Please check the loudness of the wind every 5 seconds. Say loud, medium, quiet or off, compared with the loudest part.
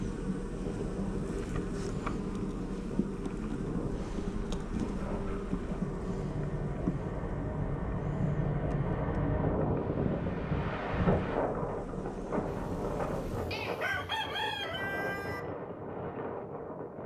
medium, loud, loud, medium.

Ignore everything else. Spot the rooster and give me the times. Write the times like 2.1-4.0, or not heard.
12.4-15.4.